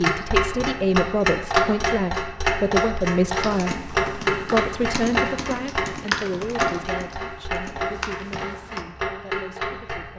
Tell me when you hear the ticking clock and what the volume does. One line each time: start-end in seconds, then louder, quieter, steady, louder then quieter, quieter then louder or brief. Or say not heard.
0.0-10.1 quieter.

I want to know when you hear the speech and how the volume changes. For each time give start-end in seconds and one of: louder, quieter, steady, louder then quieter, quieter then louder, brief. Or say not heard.
0.0-10.1 quieter.